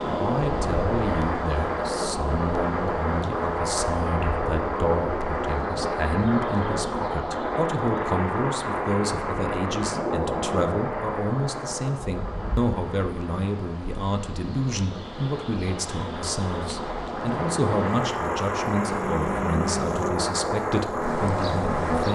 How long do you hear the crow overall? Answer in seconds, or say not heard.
not heard.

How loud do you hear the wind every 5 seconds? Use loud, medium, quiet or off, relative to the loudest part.
loud, loud, medium, loud, loud.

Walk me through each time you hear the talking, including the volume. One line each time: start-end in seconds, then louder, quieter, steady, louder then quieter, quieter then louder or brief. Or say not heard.
0.1-22.1 steady.